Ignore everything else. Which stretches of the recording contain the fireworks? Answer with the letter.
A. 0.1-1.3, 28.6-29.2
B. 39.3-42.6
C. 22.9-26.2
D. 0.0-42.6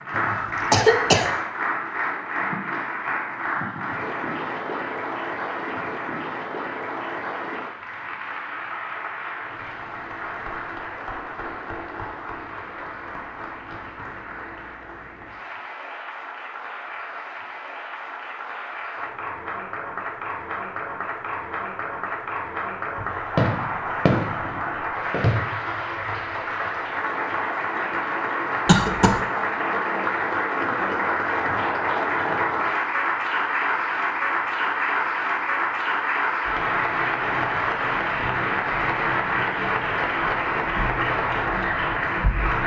C.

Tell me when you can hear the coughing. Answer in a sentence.
The coughing can be heard from 0.1 to 1.3 s and from 28.6 to 29.2 s.